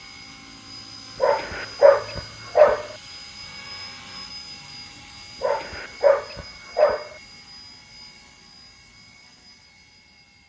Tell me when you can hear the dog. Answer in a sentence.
You can hear the dog from 1.2 to 2.9 s and from 5.4 to 7.1 s.